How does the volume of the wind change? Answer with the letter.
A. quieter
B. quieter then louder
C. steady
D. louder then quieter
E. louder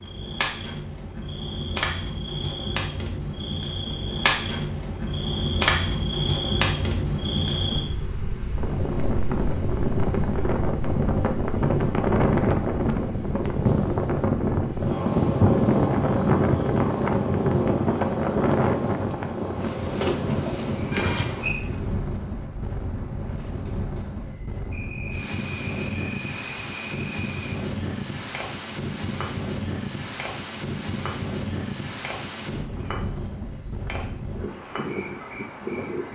A.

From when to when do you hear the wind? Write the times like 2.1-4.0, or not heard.
8.6-36.0.